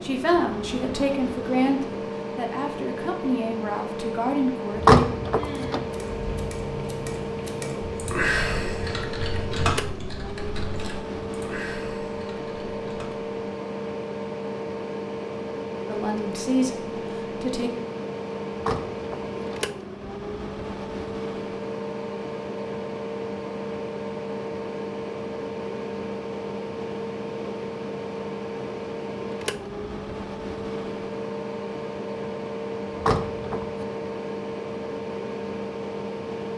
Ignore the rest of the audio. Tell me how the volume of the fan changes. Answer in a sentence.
The volume of the fan stays about the same.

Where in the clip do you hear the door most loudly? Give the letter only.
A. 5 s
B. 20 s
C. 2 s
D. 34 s
A.